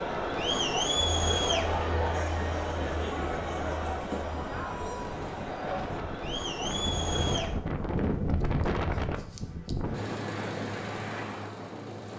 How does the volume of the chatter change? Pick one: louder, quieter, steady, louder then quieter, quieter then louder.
quieter.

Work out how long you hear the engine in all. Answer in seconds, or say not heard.
2 s.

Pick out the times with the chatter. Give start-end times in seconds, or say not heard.
0.0-7.6.